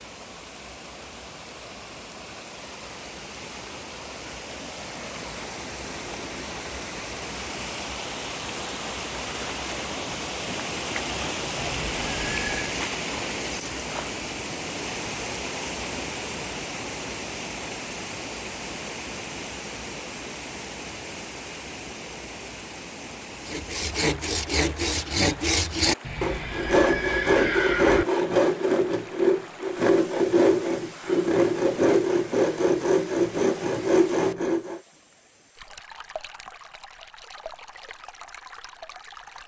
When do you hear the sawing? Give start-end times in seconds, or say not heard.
23.4-34.8.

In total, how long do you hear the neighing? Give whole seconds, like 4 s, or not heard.
3 s.